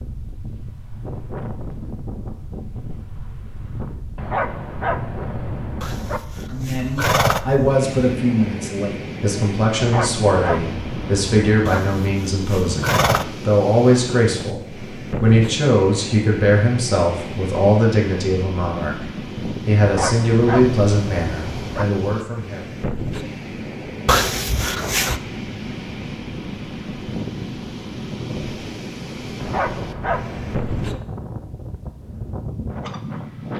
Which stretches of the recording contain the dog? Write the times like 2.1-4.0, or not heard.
4.2-6.2, 9.8-11.8, 19.8-21.9, 29.4-31.0.